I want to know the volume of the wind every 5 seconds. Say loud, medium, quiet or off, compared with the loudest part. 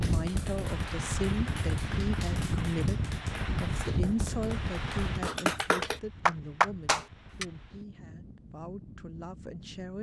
loud, quiet.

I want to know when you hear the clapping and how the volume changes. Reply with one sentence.
You can hear the clapping from 0.0 to 7.5 s, getting louder.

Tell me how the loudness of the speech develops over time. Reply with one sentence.
The loudness of the speech goes down.